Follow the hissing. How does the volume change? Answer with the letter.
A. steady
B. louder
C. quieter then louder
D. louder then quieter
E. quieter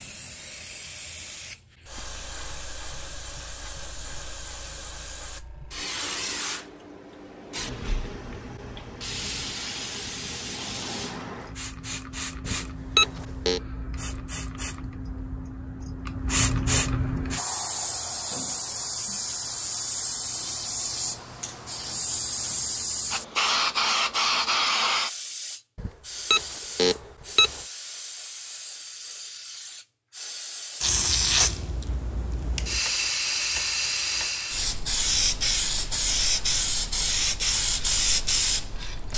B.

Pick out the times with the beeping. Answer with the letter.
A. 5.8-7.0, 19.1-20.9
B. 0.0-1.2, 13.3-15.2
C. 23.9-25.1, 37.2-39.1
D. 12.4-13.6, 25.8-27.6
D.